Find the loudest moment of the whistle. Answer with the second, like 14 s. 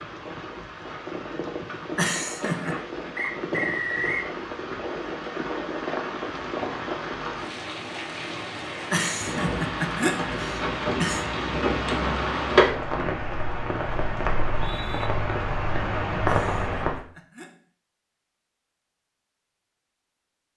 4 s.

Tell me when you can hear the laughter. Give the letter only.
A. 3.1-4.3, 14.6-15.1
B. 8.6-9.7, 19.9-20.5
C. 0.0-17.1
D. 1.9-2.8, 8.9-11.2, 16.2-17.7
D.